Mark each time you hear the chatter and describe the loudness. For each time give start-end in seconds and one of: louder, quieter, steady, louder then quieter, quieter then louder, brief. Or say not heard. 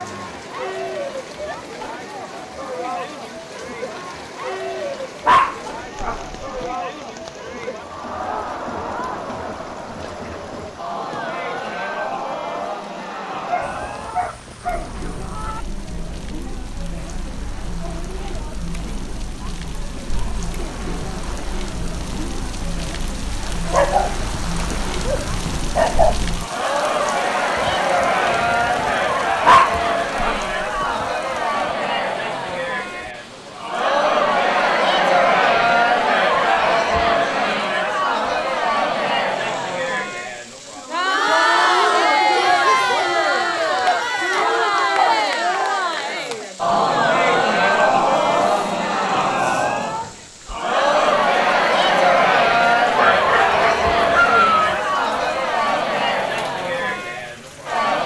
0.0-58.0 louder.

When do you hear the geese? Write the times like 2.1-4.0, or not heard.
13.6-15.7.